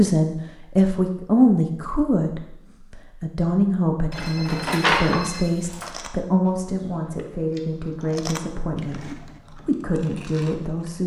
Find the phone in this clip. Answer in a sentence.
You can hear the phone from 4.1 to 5.9 s.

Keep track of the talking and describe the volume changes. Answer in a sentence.
The loudness of the talking goes down.